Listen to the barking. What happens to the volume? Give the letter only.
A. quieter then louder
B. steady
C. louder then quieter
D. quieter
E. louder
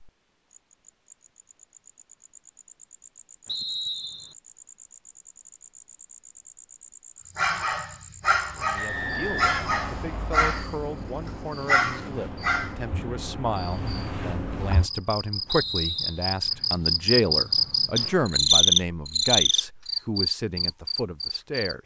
A.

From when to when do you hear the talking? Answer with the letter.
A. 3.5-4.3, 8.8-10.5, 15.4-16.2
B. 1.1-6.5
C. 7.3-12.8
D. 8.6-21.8
D.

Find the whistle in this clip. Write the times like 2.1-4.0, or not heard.
3.5-4.3, 8.8-10.5, 15.4-16.2.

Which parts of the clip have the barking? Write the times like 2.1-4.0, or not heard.
7.3-12.8.